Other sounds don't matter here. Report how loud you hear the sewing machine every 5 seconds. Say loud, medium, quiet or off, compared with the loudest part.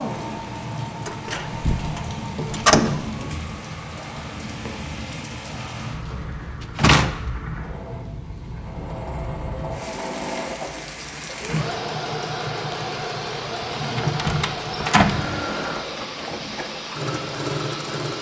medium, medium, loud, loud.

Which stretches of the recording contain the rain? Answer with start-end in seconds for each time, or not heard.
0.0-18.1.